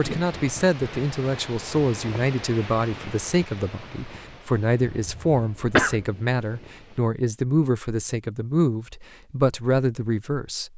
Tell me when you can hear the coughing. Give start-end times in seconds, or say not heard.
4.8-6.0.